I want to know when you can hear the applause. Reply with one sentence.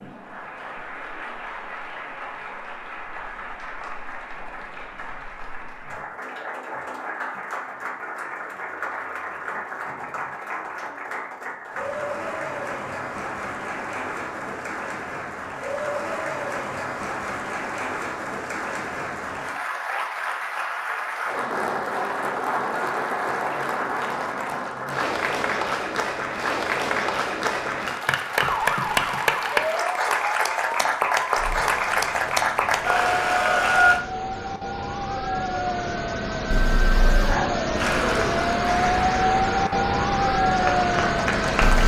You can hear the applause from 0.0 to 34.0 s and from 37.8 to 41.8 s.